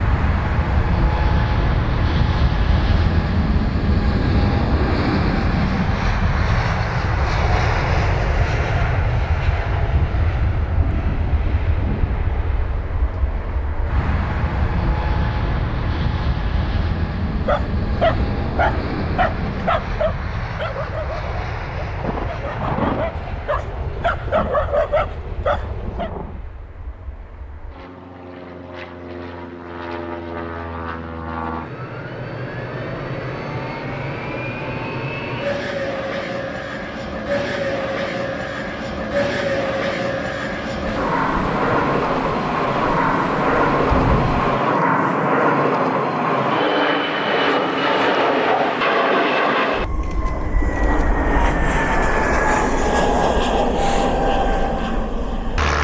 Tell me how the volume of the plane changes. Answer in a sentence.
The loudness of the plane goes down, then up.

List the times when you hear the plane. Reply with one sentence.
The plane can be heard from 0.0 to 55.7 s.